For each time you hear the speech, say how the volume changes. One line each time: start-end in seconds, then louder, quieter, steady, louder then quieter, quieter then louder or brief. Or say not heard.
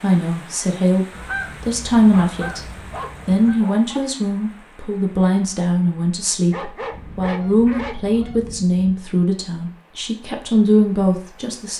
0.0-11.7 steady.